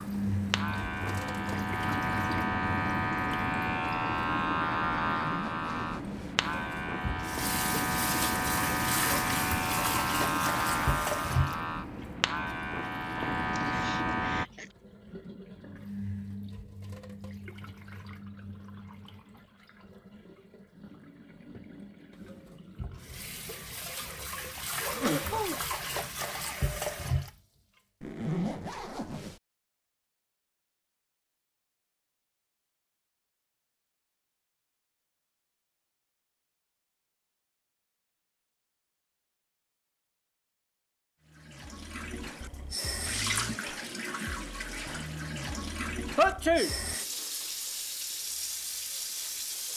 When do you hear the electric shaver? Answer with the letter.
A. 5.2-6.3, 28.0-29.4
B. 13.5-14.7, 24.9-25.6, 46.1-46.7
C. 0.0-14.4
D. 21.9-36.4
C.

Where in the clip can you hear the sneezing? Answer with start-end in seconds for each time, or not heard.
13.5-14.7, 24.9-25.6, 46.1-46.7.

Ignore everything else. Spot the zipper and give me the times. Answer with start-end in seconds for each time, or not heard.
5.2-6.3, 28.0-29.4.